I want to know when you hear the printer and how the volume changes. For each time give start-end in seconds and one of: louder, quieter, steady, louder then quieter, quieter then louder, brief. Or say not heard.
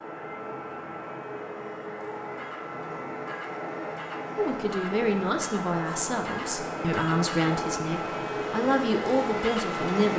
0.0-10.1 louder.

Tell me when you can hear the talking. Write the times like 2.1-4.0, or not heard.
4.3-10.1.